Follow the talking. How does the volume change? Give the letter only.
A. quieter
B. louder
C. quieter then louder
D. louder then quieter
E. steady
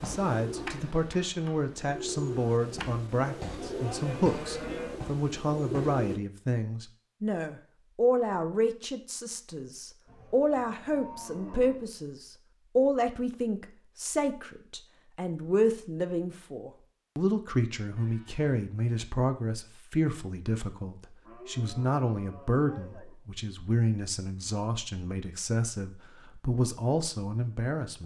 E.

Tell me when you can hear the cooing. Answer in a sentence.
You can hear the cooing from 0.0 to 6.2 s.